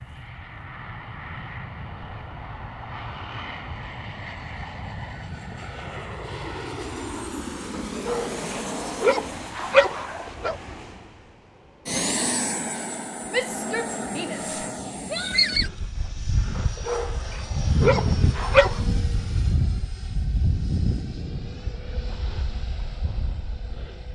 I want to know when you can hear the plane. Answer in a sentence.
The plane can be heard from 0.0 to 24.1 s.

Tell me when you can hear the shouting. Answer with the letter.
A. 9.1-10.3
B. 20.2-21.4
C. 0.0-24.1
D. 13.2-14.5
D.